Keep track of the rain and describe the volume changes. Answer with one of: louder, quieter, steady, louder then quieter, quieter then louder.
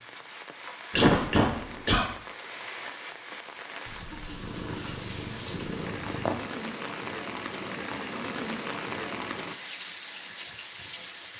louder.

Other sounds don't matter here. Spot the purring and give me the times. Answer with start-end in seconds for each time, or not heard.
4.3-6.5.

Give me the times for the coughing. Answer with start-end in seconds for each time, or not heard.
0.9-2.0.